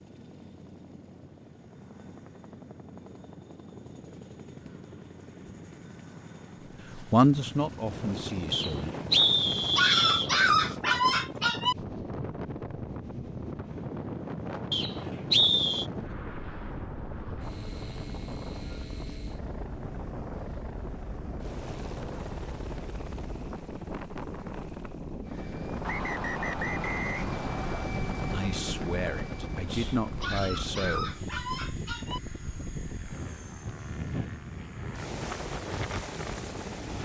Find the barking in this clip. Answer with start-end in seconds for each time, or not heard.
9.8-11.8, 30.2-32.2.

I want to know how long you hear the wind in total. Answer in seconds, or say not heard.
29 s.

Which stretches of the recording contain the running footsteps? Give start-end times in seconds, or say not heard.
not heard.